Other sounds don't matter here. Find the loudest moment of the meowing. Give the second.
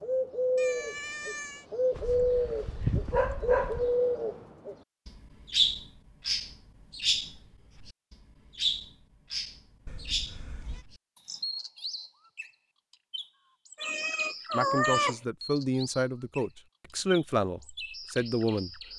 15 s.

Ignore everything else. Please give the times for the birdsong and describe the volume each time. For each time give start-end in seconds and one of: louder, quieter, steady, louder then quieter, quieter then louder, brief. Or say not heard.
0.0-18.9 quieter.